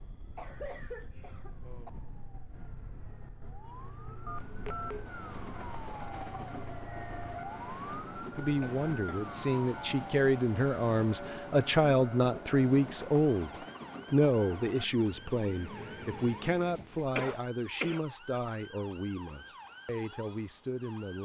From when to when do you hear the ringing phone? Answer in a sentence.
The ringing phone can be heard from 4.2 to 5.0 s.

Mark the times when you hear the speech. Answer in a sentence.
The speech can be heard from 8.3 to 21.2 s.